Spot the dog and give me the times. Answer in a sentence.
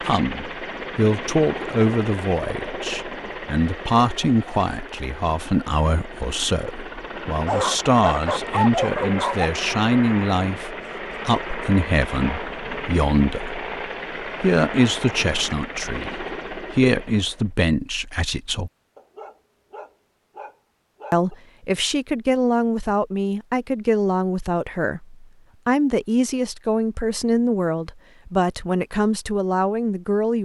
The dog can be heard from 7.5 to 9.5 s and from 18.9 to 21.4 s.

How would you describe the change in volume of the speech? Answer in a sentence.
The volume of the speech stays about the same.